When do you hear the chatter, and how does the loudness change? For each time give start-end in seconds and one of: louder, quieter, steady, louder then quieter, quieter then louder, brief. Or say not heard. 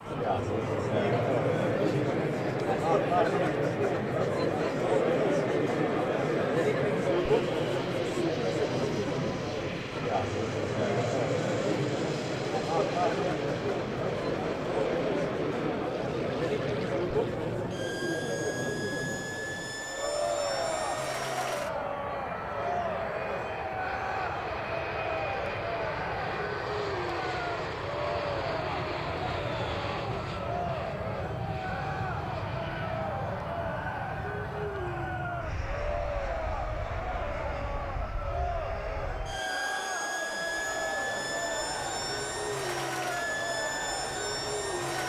0.0-45.0 quieter.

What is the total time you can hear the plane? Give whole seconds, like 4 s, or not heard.
45 s.